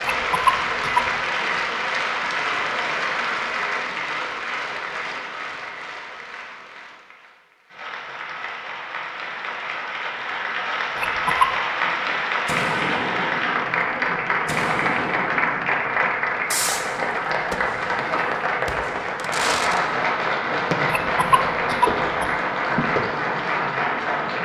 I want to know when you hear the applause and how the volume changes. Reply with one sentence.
You can hear the applause from 0.0 to 24.4 s, getting quieter then louder.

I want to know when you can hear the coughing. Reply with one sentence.
You can hear the coughing from 0.0 to 1.1 s, from 10.9 to 11.5 s and from 21.0 to 22.3 s.